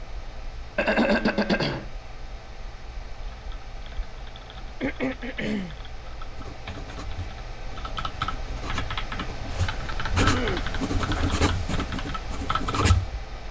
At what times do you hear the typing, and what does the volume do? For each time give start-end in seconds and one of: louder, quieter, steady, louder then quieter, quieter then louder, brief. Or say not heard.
3.2-13.0 louder.